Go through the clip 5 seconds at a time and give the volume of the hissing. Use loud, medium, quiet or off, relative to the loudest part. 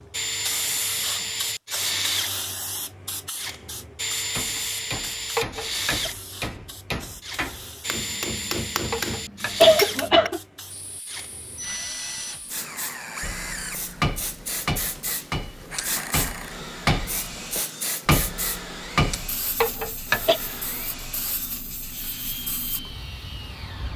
loud, medium, medium, loud, medium.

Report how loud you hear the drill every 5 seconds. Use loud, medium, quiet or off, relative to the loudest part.
loud, loud, medium, medium, medium.